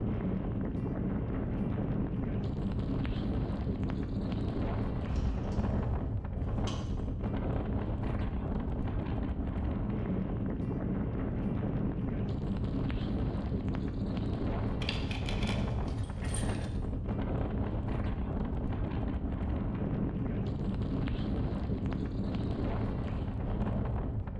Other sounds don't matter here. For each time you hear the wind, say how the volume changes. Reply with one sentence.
You can hear the wind from 0.0 to 24.3 s, at a steady volume.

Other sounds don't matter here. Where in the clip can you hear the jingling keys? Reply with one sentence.
You can hear the jingling keys from 5.0 to 6.8 s and from 14.8 to 16.6 s.